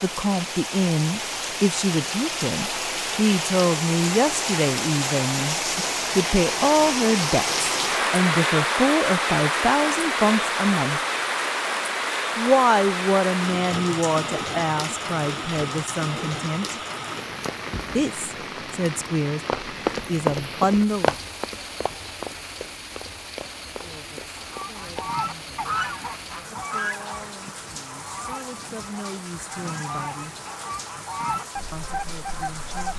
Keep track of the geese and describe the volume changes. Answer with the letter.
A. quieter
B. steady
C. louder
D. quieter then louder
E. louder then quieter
D.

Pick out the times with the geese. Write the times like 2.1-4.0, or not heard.
24.3-32.9.